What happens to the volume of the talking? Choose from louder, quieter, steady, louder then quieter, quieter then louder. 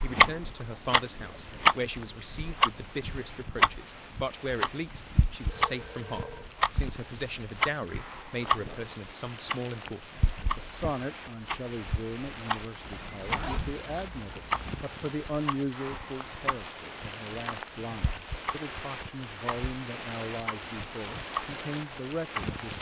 steady.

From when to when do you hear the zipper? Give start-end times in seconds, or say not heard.
12.8-14.8.